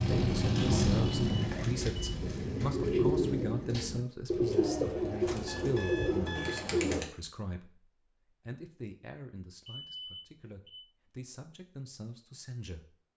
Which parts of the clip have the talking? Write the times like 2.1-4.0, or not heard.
0.1-7.8, 8.4-12.9.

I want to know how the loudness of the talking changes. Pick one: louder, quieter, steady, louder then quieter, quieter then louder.
quieter.